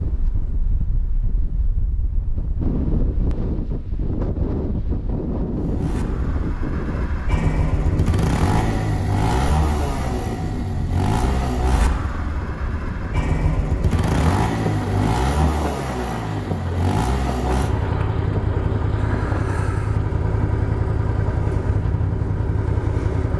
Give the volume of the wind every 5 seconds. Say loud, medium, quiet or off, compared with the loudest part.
loud, loud, loud, loud, medium.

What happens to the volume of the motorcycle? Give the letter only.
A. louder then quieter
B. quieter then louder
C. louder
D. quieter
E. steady
E.